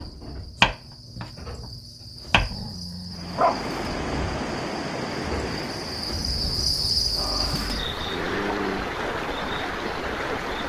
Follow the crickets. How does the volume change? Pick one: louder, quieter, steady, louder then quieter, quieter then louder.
louder then quieter.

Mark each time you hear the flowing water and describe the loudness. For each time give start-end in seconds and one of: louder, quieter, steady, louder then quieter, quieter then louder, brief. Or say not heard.
3.1-10.6 quieter then louder.